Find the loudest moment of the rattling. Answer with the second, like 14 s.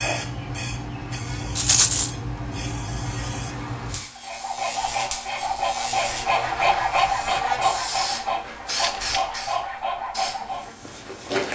2 s.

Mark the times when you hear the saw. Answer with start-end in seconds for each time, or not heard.
4.2-10.8.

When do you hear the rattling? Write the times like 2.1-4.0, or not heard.
1.6-2.1, 8.8-9.2.